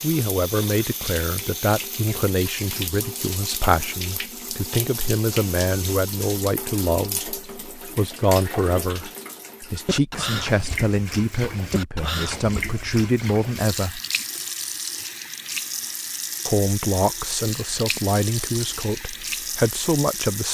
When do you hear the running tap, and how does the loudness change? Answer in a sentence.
You can hear the running tap from 0.0 to 20.4 s, at a steady volume.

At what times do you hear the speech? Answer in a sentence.
You can hear the speech from 0.0 to 14.0 s and from 16.4 to 20.4 s.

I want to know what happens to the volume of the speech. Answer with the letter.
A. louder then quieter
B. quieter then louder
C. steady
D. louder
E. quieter
C.